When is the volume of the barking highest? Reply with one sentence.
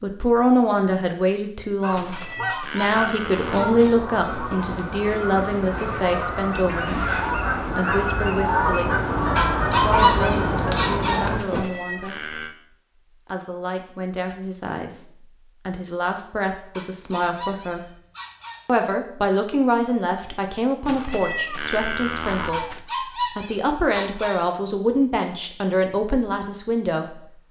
The loudest moment of the barking is at 10 seconds.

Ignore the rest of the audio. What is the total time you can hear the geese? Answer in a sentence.
The geese can be heard for 10 seconds in total.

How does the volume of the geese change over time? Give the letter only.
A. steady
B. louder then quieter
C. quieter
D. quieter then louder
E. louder
E.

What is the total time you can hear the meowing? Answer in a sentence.
The meowing can be heard for 5 seconds in total.